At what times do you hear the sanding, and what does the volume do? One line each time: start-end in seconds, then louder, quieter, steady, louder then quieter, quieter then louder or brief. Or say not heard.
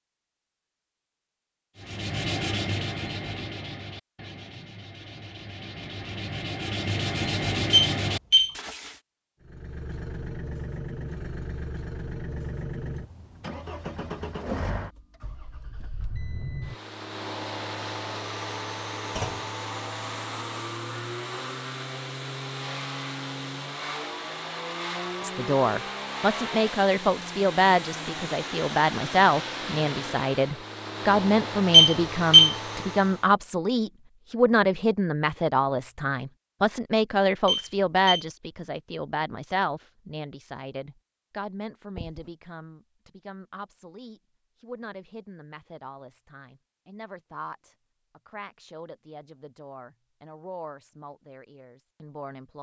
1.8-9.0 quieter then louder.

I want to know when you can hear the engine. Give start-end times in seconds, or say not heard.
9.4-33.3.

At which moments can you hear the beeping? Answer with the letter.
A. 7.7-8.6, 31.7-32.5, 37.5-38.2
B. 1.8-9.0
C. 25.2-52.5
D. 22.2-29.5
A.